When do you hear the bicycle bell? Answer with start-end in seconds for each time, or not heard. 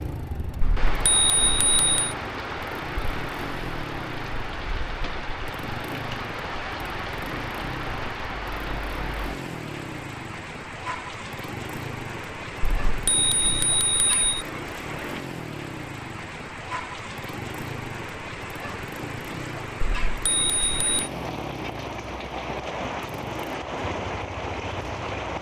0.6-2.1, 12.6-14.3, 19.8-21.1.